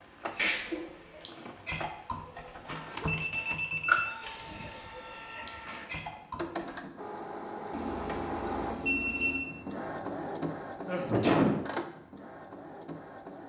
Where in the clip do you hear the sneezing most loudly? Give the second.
11 s.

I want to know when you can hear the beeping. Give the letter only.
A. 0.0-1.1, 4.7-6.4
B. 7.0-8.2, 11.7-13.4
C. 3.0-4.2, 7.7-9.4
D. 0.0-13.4
C.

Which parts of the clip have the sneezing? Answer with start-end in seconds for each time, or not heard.
0.3-0.8, 5.5-5.9, 10.8-11.6.